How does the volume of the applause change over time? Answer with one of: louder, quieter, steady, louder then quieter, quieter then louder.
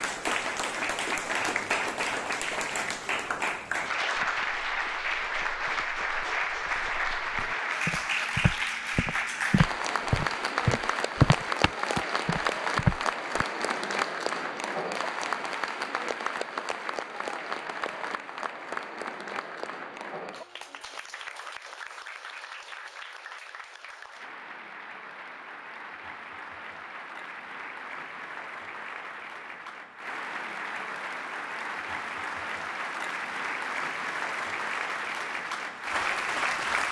quieter then louder.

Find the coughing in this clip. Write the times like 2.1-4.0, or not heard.
not heard.